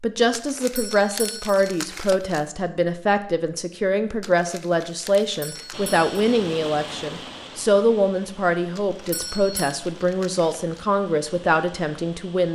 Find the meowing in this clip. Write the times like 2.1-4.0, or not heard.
not heard.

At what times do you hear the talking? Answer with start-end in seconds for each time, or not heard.
0.0-12.5.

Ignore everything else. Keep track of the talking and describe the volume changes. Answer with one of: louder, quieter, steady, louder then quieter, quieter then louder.
steady.